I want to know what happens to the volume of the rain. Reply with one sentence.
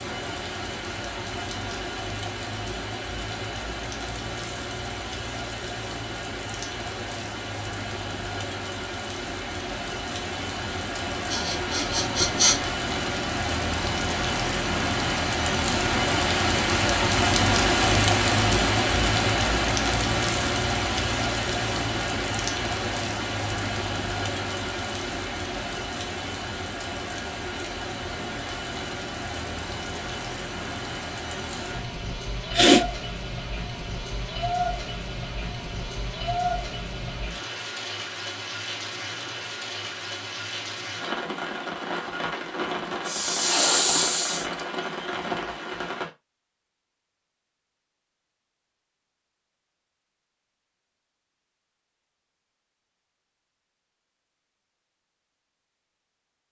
The volume of the rain goes up, then down.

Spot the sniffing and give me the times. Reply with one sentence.
The sniffing can be heard from 11.2 to 12.7 s, from 32.1 to 32.9 s and from 43.0 to 44.6 s.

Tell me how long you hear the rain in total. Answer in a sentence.
The rain can be heard for 46 seconds in total.